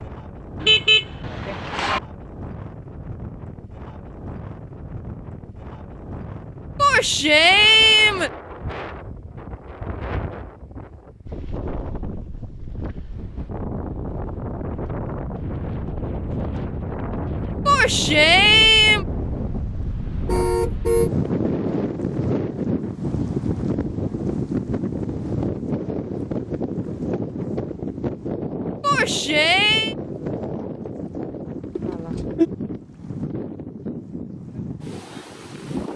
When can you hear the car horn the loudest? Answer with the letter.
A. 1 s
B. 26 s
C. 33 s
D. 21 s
A.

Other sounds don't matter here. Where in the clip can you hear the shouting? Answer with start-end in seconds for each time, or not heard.
6.8-8.3, 17.6-19.1, 28.8-29.9.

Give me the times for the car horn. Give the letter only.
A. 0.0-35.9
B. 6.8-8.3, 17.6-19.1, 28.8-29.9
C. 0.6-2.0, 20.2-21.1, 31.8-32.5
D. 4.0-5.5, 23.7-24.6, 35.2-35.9
C.